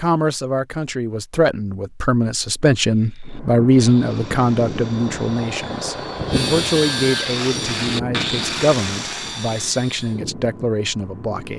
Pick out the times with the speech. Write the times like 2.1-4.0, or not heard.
0.0-11.5.